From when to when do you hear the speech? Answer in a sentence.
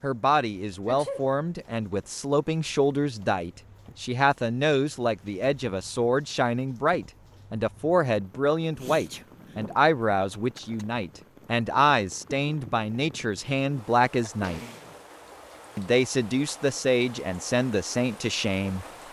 You can hear the speech from 0.0 to 14.6 s and from 15.8 to 19.0 s.